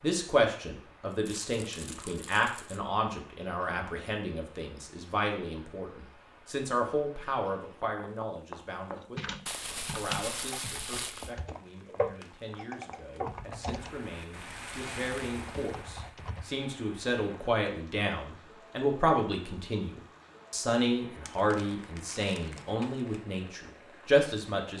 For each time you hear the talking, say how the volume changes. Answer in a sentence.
The talking can be heard from 0.0 to 24.7 s, getting quieter then louder.